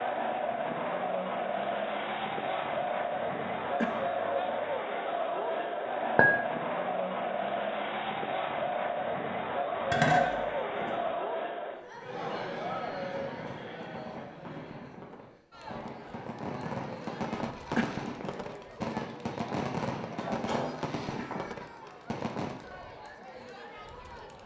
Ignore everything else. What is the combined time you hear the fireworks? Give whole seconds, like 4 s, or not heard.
10 s.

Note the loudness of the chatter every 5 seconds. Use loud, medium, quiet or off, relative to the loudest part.
loud, loud, loud, quiet, quiet.